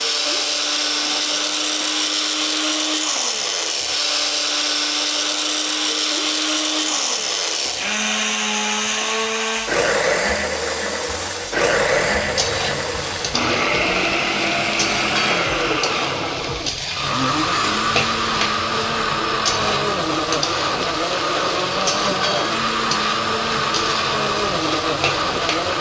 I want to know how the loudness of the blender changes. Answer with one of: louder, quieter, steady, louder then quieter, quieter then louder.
steady.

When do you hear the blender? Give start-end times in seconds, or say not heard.
0.0-25.7.